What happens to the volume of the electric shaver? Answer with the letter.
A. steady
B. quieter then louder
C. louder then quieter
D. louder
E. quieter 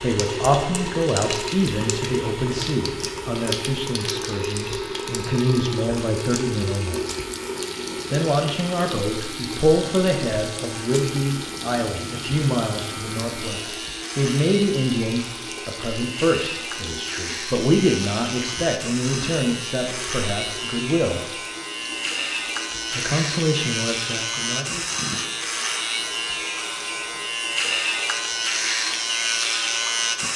D.